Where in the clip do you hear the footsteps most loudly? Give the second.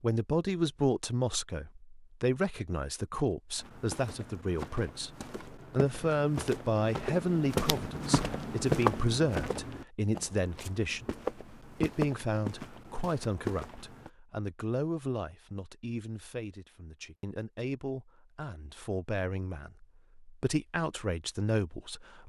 9 s.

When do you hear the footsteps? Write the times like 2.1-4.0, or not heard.
3.5-14.1.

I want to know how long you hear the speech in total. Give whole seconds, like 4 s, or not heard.
22 s.